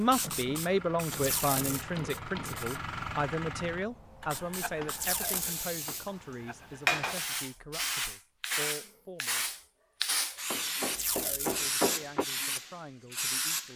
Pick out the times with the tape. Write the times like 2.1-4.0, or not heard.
1.1-1.9, 5.0-5.6, 10.9-11.6.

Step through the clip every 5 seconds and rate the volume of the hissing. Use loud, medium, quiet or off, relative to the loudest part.
medium, loud, loud.